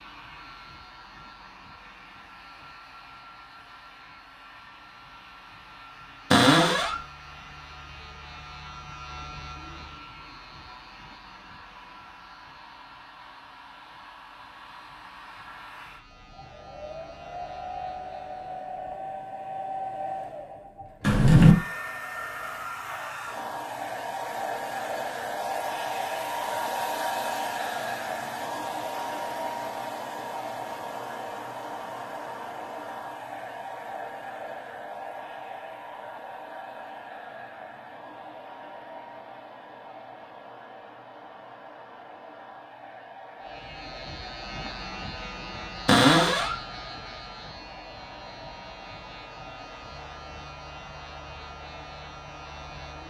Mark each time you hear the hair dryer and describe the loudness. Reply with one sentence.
The hair dryer can be heard from 0.0 to 53.0 s, getting louder then quieter.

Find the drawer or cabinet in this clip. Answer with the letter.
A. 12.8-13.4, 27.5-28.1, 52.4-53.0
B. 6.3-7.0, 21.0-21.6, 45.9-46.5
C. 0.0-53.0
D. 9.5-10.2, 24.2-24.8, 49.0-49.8
B.